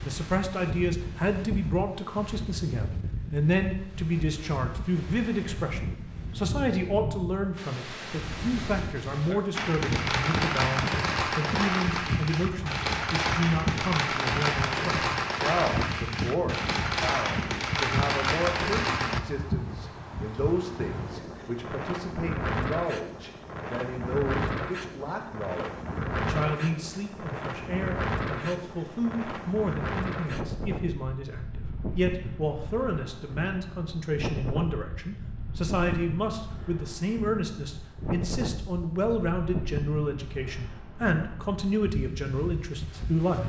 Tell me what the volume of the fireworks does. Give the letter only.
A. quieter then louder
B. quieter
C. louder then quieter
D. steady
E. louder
D.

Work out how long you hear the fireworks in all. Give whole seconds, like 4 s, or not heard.
10 s.